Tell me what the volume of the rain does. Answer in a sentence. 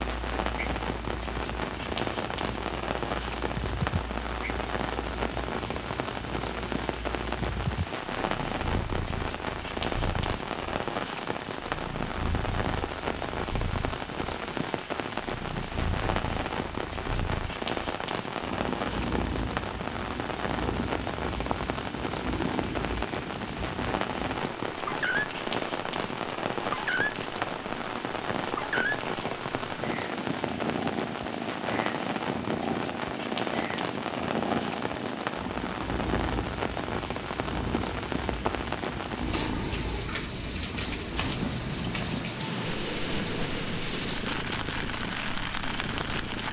The volume of the rain stays about the same.